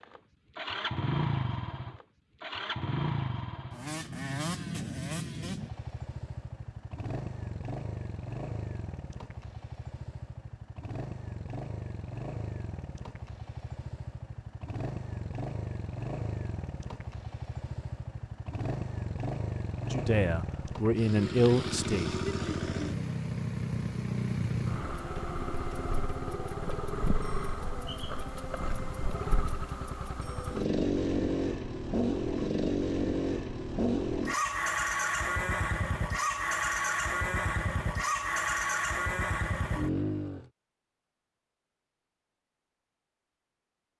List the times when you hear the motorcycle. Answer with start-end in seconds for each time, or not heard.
0.0-40.5.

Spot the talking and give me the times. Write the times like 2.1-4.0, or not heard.
19.9-22.1.